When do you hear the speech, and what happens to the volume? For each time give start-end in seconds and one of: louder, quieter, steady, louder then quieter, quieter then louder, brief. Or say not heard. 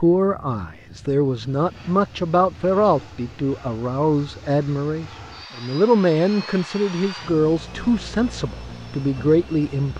0.0-9.9 steady.